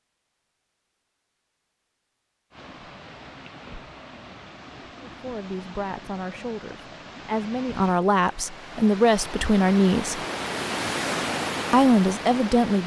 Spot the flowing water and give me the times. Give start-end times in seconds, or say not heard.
2.5-12.8.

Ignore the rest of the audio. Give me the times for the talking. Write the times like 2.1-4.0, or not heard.
5.0-10.2, 11.7-12.8.